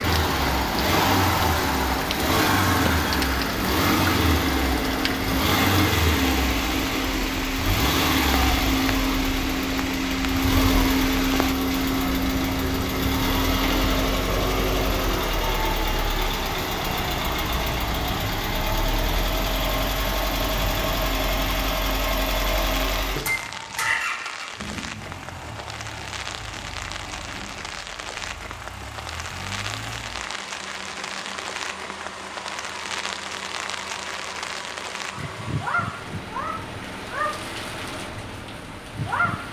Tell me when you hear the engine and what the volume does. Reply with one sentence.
You can hear the engine from 0.0 to 39.4 s, getting quieter.